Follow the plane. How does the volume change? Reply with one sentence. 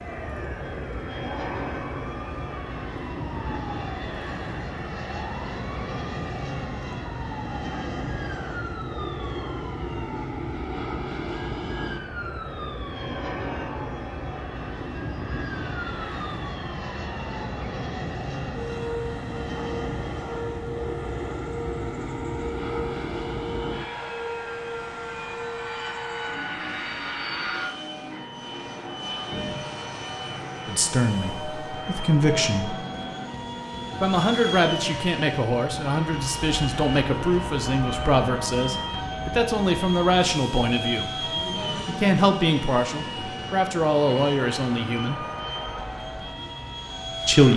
The volume of the plane stays about the same.